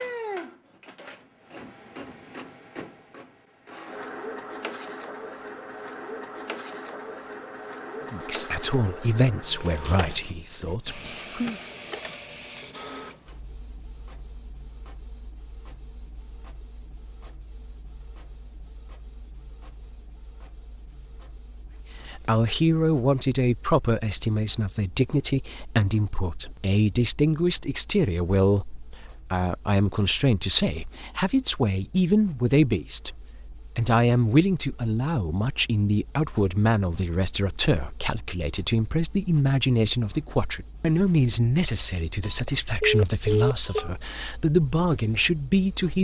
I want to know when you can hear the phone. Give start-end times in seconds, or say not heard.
42.2-43.9.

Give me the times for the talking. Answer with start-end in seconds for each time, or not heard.
8.1-11.6, 22.1-45.9.